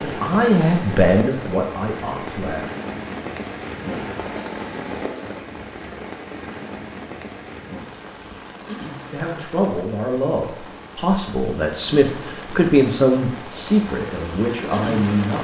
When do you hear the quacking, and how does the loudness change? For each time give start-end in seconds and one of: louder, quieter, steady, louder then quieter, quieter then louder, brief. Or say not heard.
not heard.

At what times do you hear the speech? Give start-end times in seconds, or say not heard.
0.0-2.6, 9.1-15.3.